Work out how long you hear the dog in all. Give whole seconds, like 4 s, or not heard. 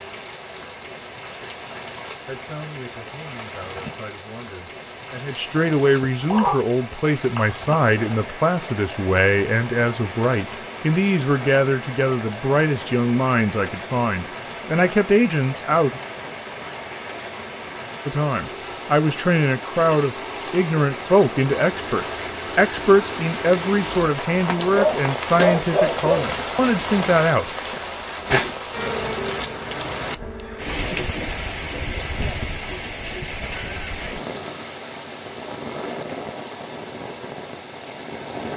3 s.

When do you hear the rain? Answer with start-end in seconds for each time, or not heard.
0.0-38.5.